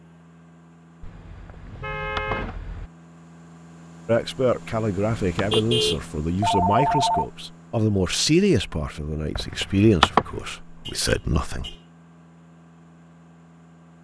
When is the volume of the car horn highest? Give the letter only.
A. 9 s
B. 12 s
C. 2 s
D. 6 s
D.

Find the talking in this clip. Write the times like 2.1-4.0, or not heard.
4.0-11.8.